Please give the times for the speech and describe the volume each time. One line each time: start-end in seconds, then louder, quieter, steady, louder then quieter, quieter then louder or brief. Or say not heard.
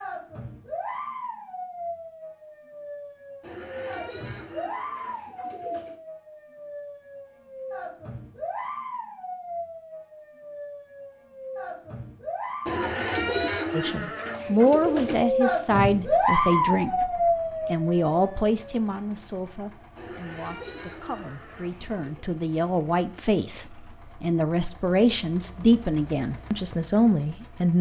13.7-27.7 quieter then louder.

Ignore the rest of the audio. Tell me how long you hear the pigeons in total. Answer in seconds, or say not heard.
7 s.